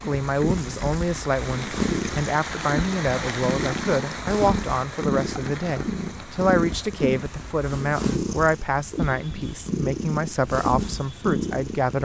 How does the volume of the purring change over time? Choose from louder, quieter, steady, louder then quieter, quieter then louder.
steady.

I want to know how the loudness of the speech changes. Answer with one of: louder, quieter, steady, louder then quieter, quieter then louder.
steady.